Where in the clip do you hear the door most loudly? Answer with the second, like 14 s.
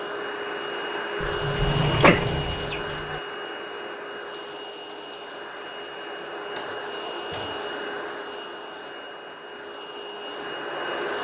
2 s.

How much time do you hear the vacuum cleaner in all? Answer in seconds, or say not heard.
11 s.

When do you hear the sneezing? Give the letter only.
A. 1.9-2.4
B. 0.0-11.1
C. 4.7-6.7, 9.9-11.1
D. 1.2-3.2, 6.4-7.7
A.